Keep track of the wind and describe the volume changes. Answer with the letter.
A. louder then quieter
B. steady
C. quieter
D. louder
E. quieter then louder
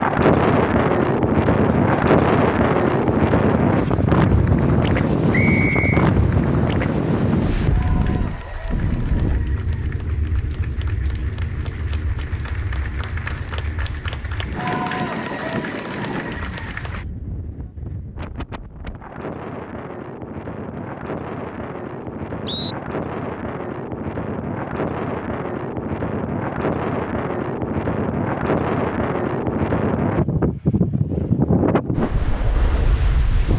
E.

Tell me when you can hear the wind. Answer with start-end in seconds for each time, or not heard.
0.0-33.5.